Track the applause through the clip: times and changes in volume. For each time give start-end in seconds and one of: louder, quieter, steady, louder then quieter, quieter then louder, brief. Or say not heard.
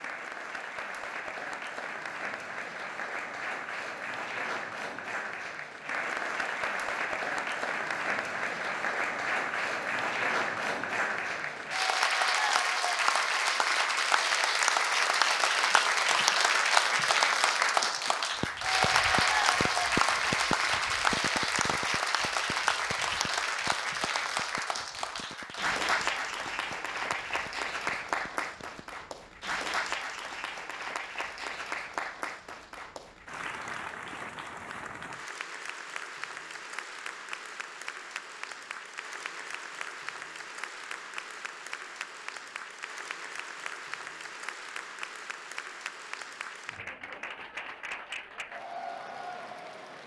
0.0-50.0 louder then quieter.